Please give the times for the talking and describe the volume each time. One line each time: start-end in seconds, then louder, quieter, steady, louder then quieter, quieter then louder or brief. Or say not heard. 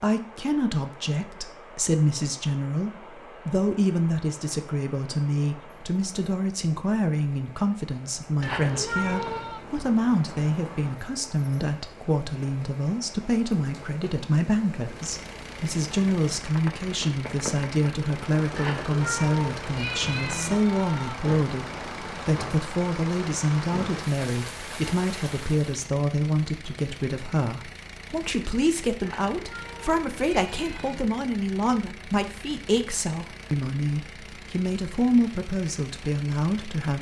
0.0-36.9 steady.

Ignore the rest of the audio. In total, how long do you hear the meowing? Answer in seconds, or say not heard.
5 s.